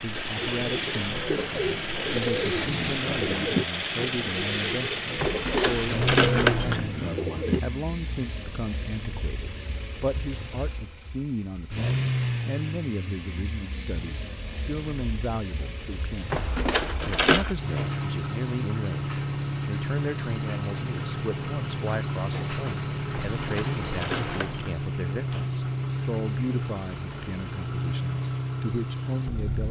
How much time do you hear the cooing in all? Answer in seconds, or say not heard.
7 s.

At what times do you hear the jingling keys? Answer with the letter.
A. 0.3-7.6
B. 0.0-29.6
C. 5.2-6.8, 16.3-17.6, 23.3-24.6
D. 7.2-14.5
C.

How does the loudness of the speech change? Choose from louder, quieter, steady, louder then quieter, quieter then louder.
steady.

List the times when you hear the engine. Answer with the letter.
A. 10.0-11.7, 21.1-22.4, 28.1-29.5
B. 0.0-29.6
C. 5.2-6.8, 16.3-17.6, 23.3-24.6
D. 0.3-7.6
B.